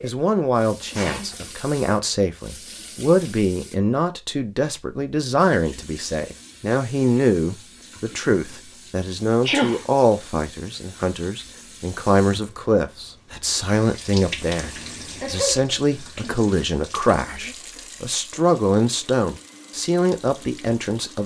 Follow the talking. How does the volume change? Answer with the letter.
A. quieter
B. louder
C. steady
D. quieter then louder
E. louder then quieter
C.